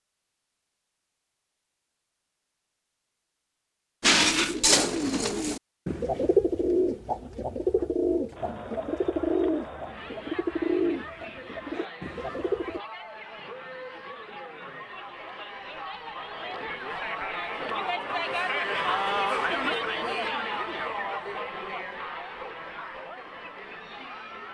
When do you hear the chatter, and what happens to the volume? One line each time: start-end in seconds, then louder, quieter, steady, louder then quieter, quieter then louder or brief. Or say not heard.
8.3-24.4 louder then quieter.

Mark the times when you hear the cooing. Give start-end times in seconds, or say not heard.
4.0-12.8.